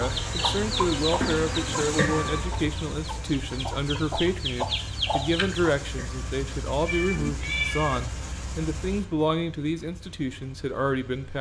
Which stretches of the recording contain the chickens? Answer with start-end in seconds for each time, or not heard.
0.0-5.8.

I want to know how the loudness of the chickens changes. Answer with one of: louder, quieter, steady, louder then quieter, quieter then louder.
quieter then louder.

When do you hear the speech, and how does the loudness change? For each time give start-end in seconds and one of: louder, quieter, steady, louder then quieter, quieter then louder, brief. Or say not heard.
0.0-11.3 steady.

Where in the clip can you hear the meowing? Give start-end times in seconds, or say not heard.
1.9-2.5, 6.0-8.0.